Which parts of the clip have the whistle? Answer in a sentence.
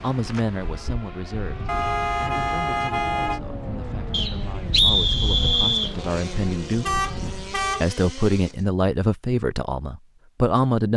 The whistle can be heard from 4.1 to 6.0 s.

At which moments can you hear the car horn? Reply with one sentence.
You can hear the car horn from 1.6 to 3.4 s and from 6.8 to 7.8 s.